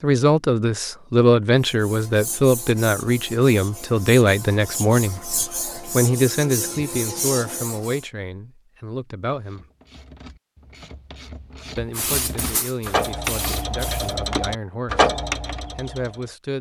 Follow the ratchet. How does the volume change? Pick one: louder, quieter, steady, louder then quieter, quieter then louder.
louder.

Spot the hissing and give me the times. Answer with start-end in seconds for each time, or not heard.
11.9-14.2.